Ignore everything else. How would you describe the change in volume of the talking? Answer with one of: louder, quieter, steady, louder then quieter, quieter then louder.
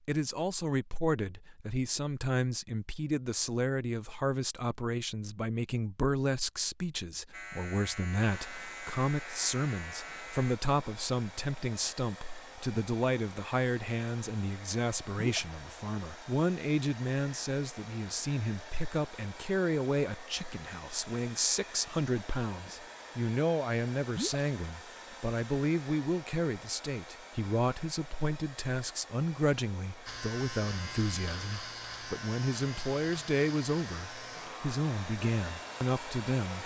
steady.